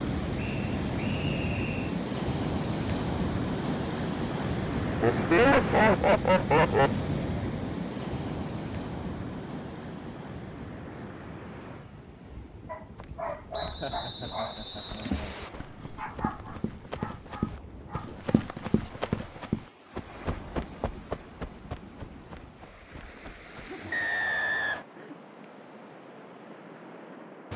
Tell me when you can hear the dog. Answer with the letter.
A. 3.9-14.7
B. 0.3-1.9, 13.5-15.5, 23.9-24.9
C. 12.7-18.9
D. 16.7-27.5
C.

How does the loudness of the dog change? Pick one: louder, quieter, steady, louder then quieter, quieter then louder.
quieter.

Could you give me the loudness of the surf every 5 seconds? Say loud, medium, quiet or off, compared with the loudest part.
loud, loud, quiet, quiet, quiet, quiet.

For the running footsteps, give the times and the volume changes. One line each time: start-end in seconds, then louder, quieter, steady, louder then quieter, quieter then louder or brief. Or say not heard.
12.9-23.8 louder then quieter.